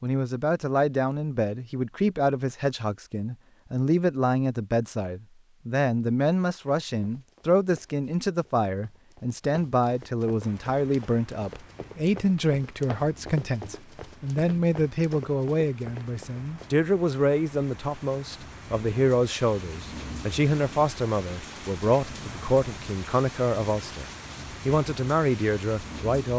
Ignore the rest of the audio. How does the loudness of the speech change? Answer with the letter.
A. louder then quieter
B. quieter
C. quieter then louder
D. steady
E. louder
D.